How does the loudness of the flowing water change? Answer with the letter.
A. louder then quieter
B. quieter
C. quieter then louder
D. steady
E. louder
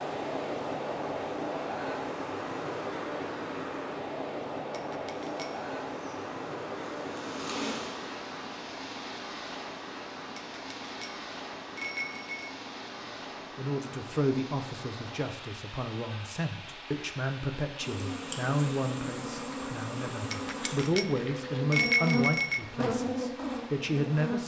B.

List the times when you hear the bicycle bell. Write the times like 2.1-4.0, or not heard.
4.7-5.7, 10.3-12.5, 20.3-22.6.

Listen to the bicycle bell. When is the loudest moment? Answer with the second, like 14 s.
22 s.